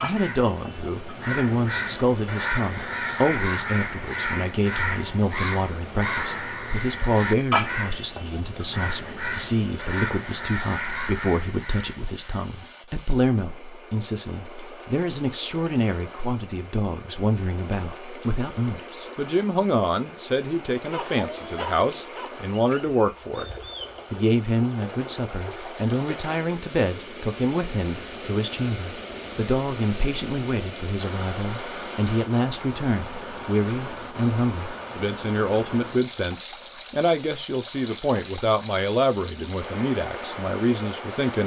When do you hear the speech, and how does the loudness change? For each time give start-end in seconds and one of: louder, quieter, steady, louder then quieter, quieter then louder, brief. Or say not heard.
0.0-41.4 steady.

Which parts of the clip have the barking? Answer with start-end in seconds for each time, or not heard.
20.9-22.4.